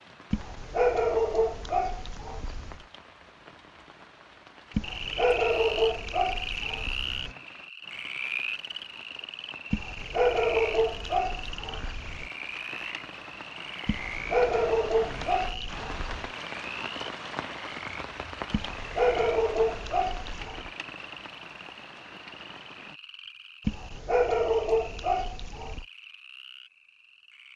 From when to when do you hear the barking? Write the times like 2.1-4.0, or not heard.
0.3-2.8, 4.8-7.3, 9.7-12.3, 13.8-16.3, 18.5-20.7, 23.6-25.9.